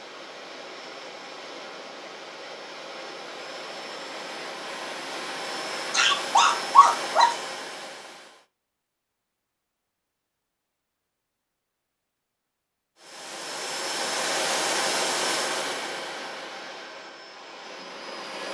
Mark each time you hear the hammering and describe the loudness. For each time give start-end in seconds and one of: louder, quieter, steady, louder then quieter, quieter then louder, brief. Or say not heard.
not heard.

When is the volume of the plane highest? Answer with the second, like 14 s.
15 s.